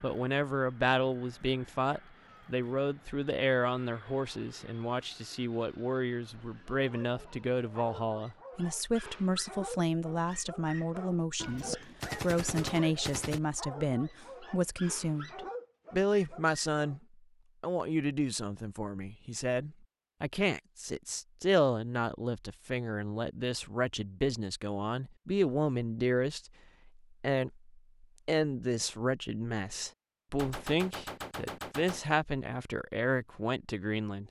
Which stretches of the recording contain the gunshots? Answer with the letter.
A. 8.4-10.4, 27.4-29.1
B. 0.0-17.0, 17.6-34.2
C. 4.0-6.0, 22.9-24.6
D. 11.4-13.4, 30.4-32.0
D.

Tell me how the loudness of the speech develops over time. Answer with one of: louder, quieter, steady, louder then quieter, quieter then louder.
steady.